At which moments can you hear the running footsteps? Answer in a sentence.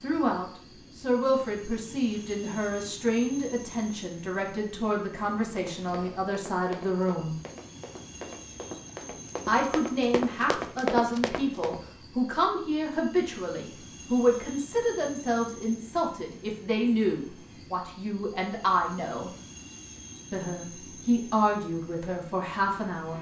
The running footsteps can be heard from 5.5 to 11.8 s.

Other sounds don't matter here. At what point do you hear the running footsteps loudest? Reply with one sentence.
The loudest moment of the running footsteps is at 11 seconds.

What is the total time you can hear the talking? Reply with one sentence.
The talking can be heard for 20 seconds in total.